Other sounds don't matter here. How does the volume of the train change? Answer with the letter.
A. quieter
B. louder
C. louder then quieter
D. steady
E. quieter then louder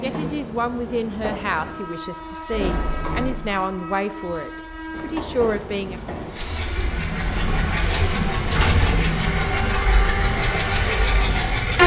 B.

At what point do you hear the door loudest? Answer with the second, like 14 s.
9 s.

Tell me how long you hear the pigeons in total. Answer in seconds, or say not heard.
not heard.